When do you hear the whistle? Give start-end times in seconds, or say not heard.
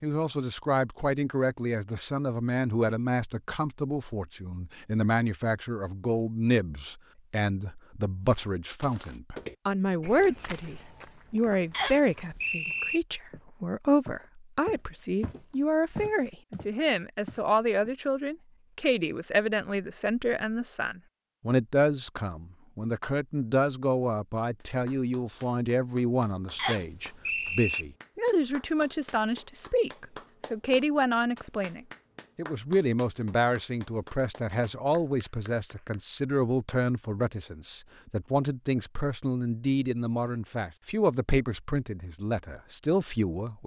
11.7-13.0, 26.6-27.9.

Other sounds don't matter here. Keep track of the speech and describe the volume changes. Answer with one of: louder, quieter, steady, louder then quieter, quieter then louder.
steady.